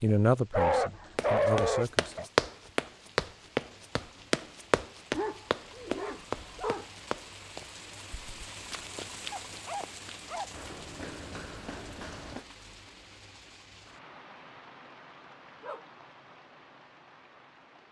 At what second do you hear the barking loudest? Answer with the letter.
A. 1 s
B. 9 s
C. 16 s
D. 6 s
A.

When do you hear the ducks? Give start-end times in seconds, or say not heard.
not heard.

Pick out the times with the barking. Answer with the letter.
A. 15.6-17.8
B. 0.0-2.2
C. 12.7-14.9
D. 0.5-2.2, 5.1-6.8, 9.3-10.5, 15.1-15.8
D.